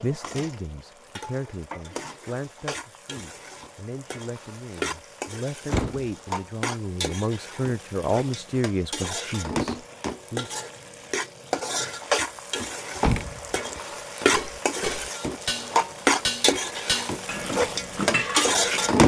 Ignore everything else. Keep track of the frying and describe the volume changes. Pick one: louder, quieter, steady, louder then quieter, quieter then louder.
louder.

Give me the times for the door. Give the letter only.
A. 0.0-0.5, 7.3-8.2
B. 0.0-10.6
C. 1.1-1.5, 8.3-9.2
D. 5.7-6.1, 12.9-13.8
D.